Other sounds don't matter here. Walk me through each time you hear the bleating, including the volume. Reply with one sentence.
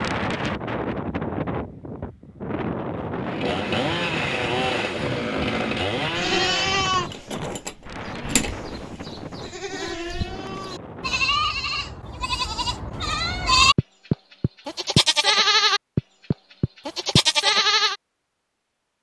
You can hear the bleating from 6.2 to 17.9 s, getting quieter then louder.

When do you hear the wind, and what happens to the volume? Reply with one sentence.
You can hear the wind from 0.0 to 11.4 s, getting quieter.